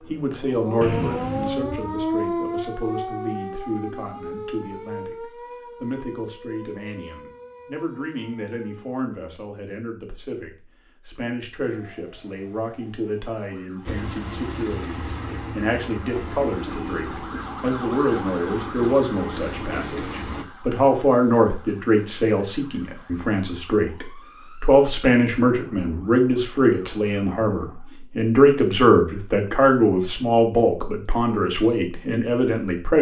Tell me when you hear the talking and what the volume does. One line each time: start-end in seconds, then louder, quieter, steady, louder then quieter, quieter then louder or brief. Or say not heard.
0.1-32.9 louder.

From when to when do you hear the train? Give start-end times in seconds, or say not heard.
13.8-20.4.